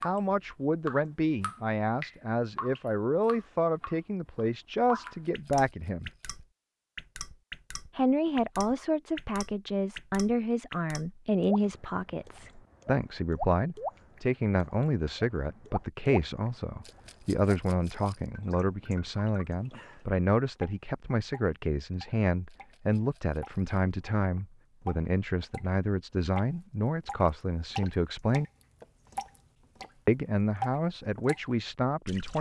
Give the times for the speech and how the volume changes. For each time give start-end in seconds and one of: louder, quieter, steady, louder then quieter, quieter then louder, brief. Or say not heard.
0.0-6.1 steady
8.0-28.4 steady
30.1-32.3 brief.